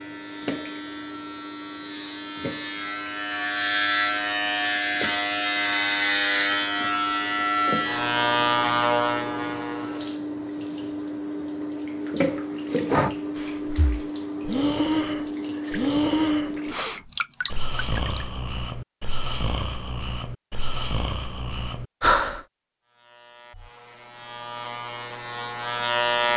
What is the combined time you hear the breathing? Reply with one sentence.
The breathing can be heard for 10 seconds in total.